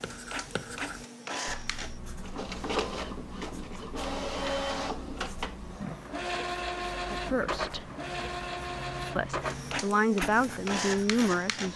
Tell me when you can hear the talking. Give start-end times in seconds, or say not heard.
7.1-7.9, 9.2-11.7.